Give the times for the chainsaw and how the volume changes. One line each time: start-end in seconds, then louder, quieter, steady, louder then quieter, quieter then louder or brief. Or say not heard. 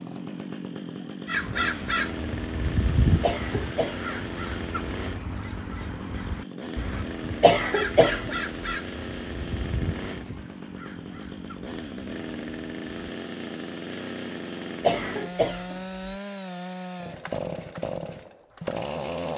0.0-19.3 steady.